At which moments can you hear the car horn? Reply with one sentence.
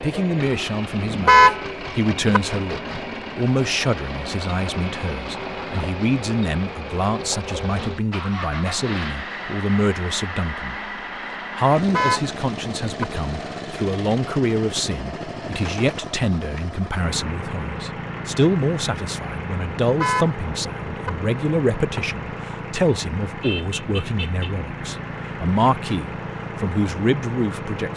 The car horn can be heard from 1.1 to 2.4 s, from 11.8 to 13.1 s and from 19.8 to 21.1 s.